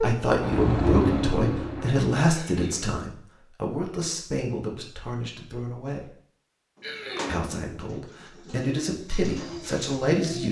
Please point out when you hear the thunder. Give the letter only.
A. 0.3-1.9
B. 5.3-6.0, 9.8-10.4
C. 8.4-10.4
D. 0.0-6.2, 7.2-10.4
A.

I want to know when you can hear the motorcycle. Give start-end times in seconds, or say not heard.
0.0-2.0.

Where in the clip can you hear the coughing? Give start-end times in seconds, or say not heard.
2.3-3.0, 6.8-7.5.